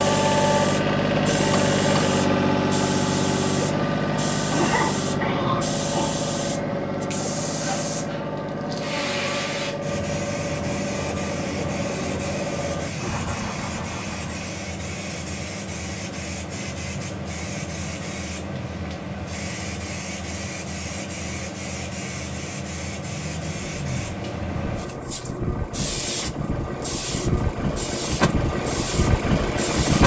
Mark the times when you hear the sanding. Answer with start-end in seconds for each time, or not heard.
not heard.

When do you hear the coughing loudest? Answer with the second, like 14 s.
5 s.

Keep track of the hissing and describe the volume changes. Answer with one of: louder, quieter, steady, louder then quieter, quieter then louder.
steady.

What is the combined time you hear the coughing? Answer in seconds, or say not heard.
2 s.